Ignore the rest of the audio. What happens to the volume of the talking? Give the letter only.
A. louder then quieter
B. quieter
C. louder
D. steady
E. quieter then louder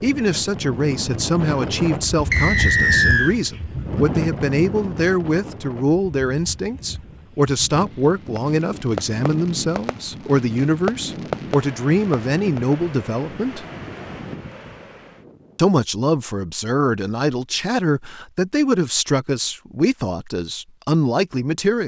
D.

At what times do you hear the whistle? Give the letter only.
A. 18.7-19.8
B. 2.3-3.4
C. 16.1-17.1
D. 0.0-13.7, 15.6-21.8
B.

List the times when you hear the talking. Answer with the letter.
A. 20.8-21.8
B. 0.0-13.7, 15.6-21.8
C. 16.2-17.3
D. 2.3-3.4
B.